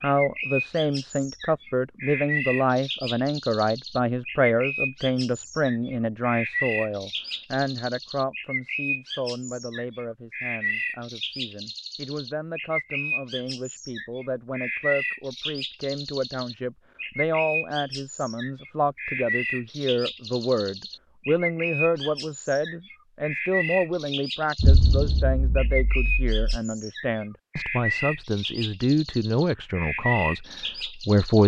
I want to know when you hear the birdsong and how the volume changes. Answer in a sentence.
You can hear the birdsong from 0.0 to 31.4 s, at a steady volume.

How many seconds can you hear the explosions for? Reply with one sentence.
You can hear the explosions for 2 seconds altogether.